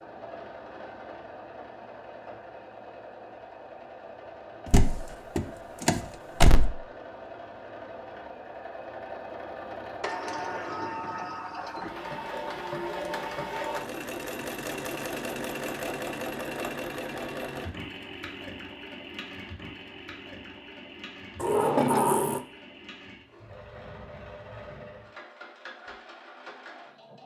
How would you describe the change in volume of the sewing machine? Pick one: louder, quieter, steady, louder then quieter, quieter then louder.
louder then quieter.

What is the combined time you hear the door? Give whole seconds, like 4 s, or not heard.
5 s.